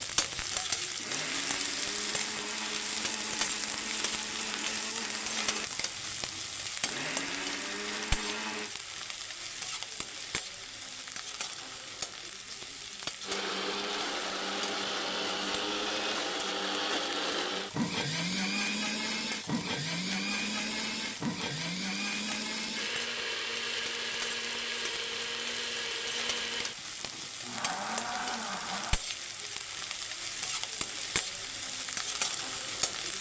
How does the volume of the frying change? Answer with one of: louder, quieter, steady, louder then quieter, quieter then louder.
quieter then louder.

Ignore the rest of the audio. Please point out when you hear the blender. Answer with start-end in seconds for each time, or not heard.
0.0-8.8, 13.2-29.0.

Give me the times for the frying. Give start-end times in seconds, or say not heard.
0.0-33.1.